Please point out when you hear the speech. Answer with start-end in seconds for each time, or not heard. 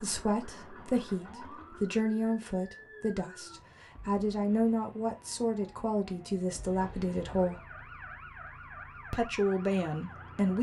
0.0-7.7, 9.1-10.5.